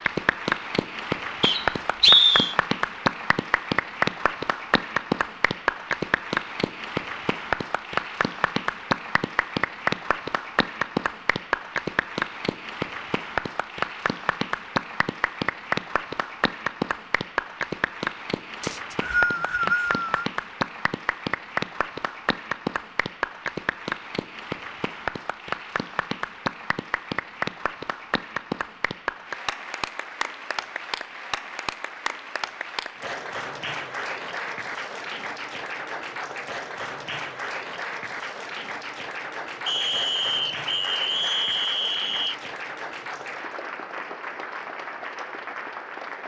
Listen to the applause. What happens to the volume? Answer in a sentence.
The volume of the applause goes down.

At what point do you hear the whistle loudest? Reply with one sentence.
The volume of the whistle peaks at 2 seconds.